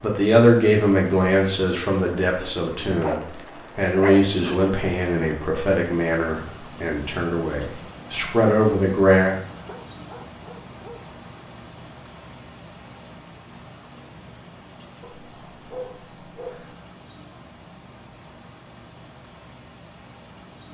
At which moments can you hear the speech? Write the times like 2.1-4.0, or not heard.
0.0-9.4.